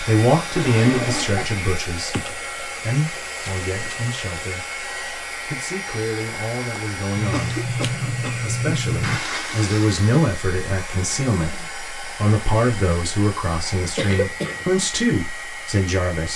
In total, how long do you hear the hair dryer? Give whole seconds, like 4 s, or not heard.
16 s.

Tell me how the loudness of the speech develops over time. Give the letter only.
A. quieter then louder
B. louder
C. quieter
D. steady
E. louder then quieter
A.